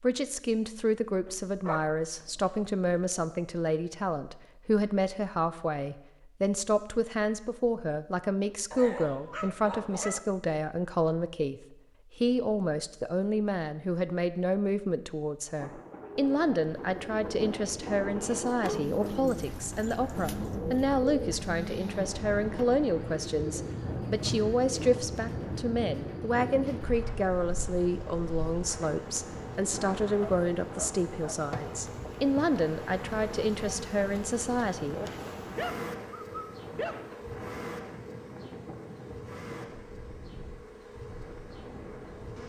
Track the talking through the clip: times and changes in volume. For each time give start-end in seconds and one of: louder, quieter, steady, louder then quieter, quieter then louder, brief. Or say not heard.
0.0-35.2 steady.